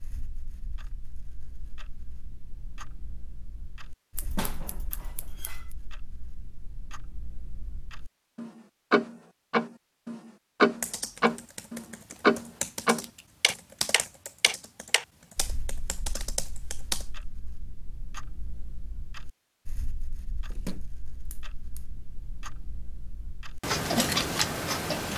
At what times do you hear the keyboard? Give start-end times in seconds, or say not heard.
10.8-17.1.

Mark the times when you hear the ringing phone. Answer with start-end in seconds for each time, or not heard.
not heard.